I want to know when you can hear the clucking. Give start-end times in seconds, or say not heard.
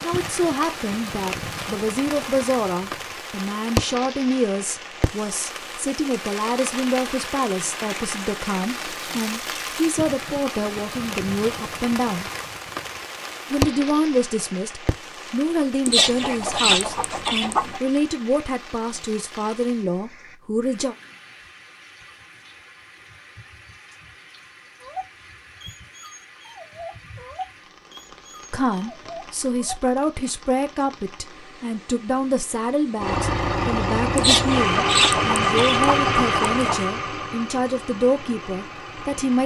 15.8-17.8, 34.1-36.9.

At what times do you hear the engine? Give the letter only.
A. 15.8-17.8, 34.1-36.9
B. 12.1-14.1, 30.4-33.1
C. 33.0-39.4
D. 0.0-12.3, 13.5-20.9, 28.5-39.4
C.